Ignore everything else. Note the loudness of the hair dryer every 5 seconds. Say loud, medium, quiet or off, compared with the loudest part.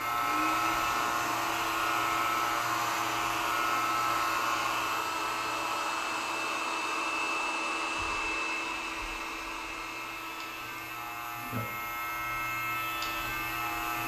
loud, loud, medium.